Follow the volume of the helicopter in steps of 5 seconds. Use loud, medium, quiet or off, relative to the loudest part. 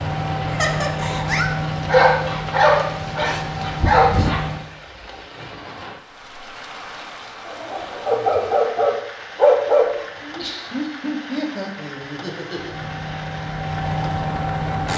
loud, off, loud.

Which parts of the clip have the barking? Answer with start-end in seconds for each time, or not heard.
1.9-4.4, 8.1-10.0.